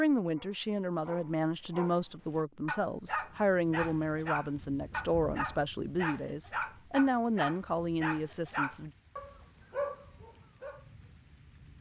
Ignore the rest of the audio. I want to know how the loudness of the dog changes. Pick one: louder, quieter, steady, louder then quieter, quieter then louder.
louder.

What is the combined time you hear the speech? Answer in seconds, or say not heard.
9 s.